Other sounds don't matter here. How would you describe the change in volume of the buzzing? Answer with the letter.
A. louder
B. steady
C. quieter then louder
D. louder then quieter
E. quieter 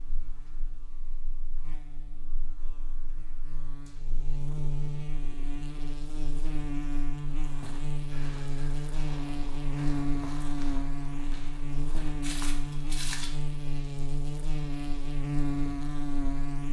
A.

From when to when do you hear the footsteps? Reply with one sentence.
The footsteps can be heard from 7.3 to 13.3 s.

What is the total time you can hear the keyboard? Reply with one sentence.
The keyboard can't be heard in this clip.